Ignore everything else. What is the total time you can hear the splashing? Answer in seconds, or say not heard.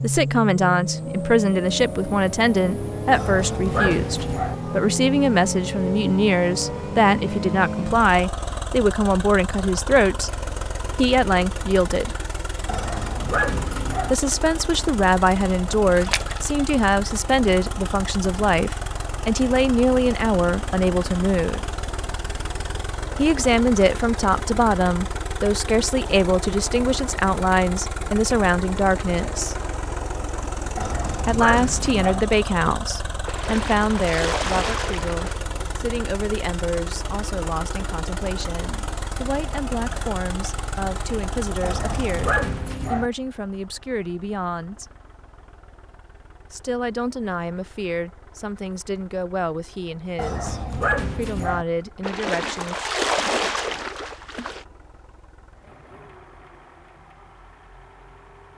5 s.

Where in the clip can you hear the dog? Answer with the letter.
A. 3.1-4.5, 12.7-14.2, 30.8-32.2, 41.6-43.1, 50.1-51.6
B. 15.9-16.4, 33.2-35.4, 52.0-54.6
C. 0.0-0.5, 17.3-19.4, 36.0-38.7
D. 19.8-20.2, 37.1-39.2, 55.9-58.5
A.